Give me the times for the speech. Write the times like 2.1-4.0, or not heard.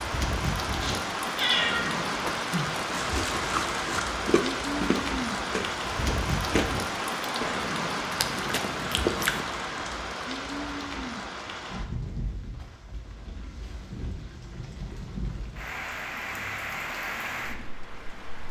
not heard.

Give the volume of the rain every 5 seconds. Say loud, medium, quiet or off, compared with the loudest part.
loud, loud, medium, medium.